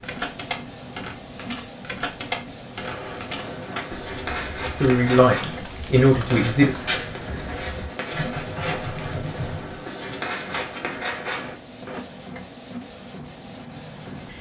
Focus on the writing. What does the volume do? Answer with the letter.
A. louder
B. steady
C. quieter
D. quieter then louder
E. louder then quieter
B.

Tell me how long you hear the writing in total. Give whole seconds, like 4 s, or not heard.
9 s.